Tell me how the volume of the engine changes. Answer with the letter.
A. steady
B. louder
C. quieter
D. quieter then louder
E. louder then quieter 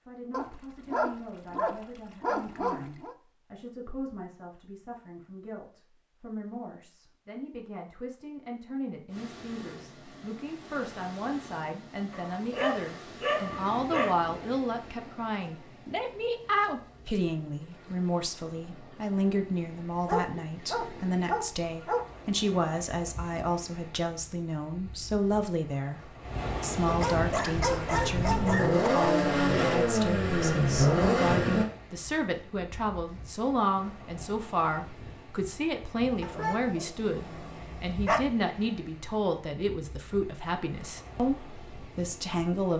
B.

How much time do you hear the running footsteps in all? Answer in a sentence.
You can't hear the running footsteps here.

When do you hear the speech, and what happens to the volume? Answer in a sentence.
You can hear the speech from 0.1 to 26.0 s, getting louder; and from 26.6 to 42.7 s, at a steady volume.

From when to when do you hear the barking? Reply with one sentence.
The barking can be heard from 0.3 to 3.1 s, from 12.1 to 14.2 s, from 20.1 to 22.1 s, from 26.9 to 28.8 s and from 36.2 to 38.2 s.